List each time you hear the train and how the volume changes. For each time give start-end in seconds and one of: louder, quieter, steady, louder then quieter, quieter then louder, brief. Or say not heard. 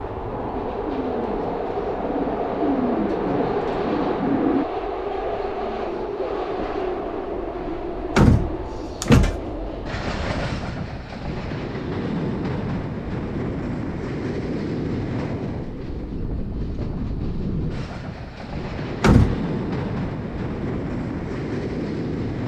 0.0-22.4 steady.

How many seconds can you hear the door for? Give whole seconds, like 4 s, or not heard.
2 s.